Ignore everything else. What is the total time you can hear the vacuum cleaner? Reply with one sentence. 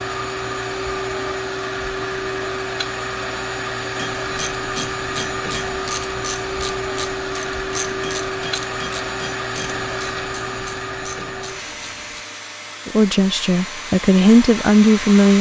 You can hear the vacuum cleaner for 15 seconds altogether.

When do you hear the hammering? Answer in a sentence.
The hammering can be heard from 4.0 to 5.8 s and from 8.0 to 9.8 s.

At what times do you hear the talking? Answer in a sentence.
You can hear the talking from 12.8 to 15.3 s.